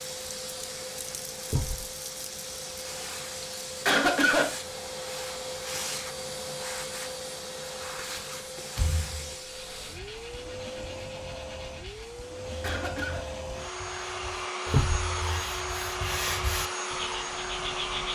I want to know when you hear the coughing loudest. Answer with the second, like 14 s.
4 s.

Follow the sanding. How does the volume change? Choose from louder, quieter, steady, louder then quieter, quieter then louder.
louder.